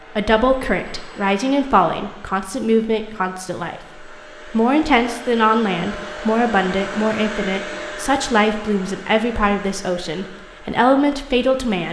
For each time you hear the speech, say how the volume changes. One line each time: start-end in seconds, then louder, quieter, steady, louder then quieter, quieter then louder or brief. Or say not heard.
0.1-11.8 steady.